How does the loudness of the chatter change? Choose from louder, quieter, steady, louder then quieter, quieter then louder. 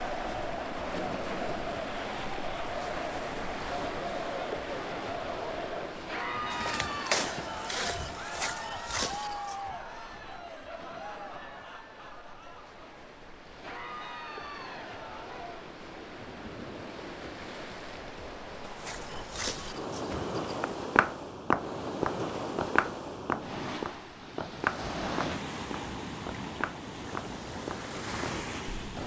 quieter.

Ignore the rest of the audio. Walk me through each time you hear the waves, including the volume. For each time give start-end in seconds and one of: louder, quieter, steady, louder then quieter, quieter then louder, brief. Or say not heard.
0.0-29.0 quieter then louder.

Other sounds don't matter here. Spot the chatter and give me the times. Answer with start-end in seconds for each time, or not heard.
0.0-15.7.